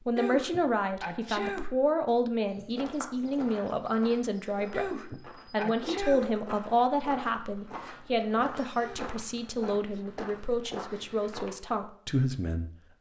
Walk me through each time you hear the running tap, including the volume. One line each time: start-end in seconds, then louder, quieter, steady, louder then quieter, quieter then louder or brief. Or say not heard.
not heard.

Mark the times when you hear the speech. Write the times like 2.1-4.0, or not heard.
0.1-12.7.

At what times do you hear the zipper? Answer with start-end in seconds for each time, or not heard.
not heard.